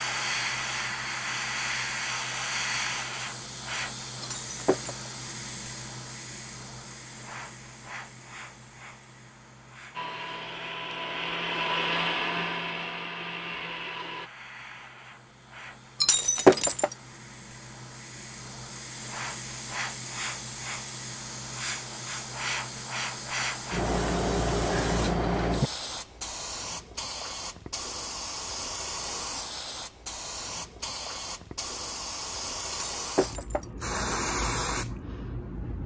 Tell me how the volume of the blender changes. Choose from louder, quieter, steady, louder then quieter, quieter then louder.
louder then quieter.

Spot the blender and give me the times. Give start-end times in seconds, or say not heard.
9.9-14.3.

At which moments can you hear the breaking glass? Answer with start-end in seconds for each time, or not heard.
4.2-5.0, 16.0-16.9, 33.0-33.6.